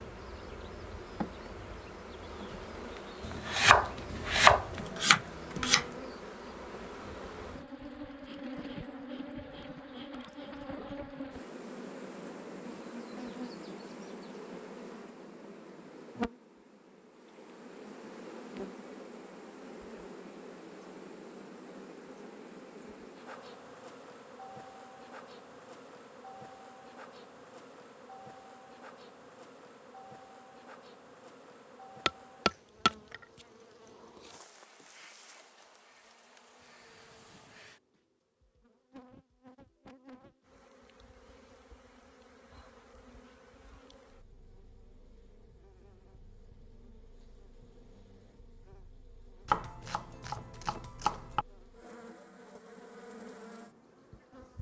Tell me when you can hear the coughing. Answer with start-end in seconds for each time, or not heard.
not heard.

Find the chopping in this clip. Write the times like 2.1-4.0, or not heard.
3.2-5.8, 32.0-33.2, 49.5-51.5.